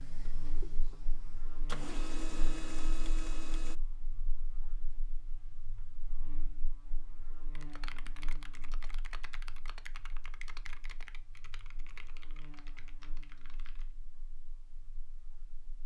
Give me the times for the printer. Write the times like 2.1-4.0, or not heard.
0.0-3.8.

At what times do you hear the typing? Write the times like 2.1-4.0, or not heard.
7.5-13.9.